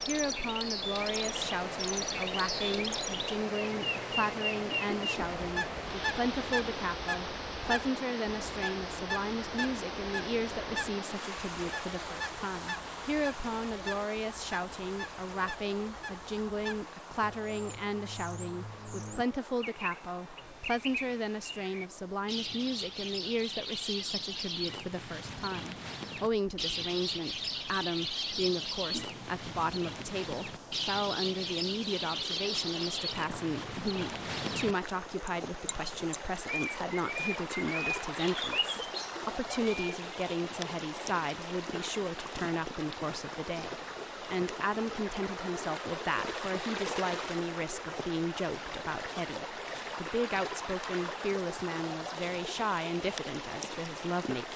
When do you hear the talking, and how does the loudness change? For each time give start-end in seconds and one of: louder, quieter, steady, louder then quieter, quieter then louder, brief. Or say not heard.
0.1-54.5 steady.